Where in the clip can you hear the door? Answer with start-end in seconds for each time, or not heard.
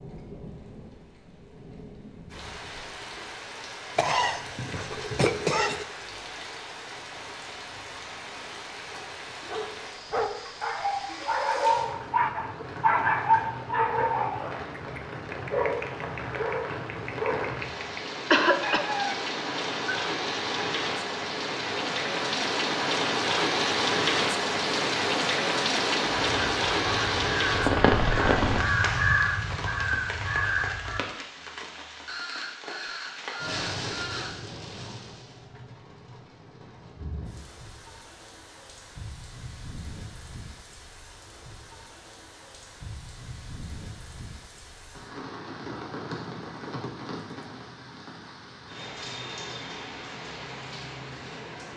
not heard.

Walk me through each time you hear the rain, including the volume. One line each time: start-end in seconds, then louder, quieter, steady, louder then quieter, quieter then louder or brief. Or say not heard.
0.0-51.7 louder then quieter.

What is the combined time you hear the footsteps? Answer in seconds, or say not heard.
not heard.